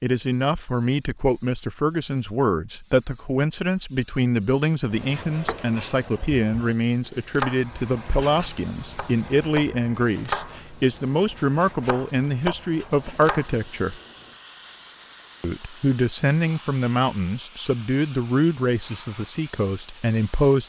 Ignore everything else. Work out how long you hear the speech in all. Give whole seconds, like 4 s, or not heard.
19 s.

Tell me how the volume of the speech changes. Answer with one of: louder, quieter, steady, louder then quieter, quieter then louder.
steady.